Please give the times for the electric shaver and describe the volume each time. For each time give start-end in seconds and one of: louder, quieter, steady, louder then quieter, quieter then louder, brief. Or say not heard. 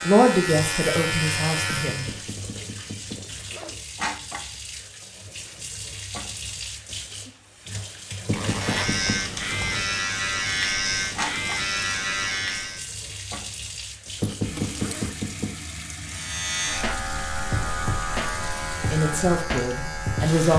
0.0-2.2 brief
8.4-12.8 steady
16.1-20.5 steady.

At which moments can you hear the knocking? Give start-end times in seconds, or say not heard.
1.6-3.2, 8.2-9.2, 14.2-15.5.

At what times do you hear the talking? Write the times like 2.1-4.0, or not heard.
0.0-2.0, 18.9-20.5.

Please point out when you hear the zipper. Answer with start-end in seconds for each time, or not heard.
3.1-3.8, 8.3-9.9, 14.2-15.2.